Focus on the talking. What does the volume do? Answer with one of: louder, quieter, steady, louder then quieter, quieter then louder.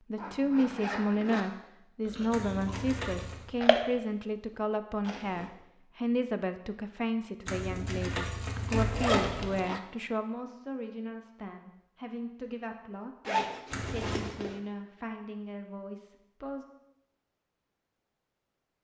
quieter.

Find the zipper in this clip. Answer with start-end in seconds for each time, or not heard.
0.1-1.4, 8.6-9.8, 13.2-14.6.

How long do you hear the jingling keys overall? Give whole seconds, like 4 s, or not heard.
4 s.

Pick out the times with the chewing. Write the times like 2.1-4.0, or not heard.
2.0-5.5.